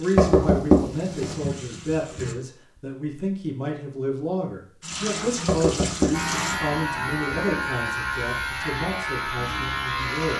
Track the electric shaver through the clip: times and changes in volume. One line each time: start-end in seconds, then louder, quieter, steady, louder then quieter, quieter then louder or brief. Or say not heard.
6.1-10.3 steady.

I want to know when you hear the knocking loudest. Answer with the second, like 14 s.
1 s.